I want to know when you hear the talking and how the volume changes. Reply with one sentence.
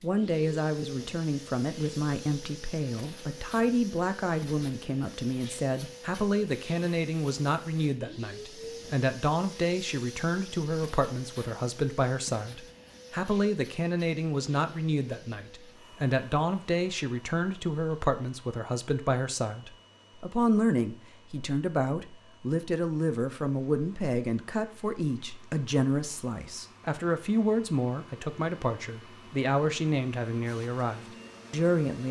You can hear the talking from 0.0 to 32.0 s, at a steady volume.